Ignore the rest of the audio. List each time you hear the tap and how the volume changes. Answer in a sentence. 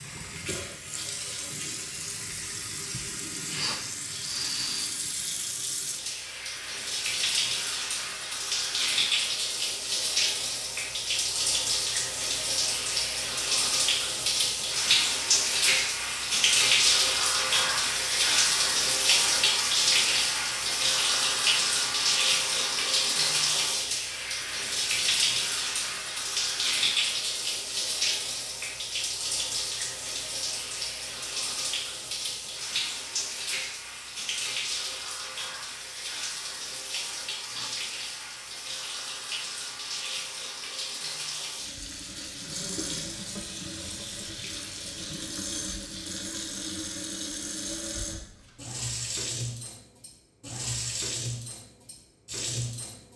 The tap can be heard from 0.0 to 53.1 s, getting louder then quieter.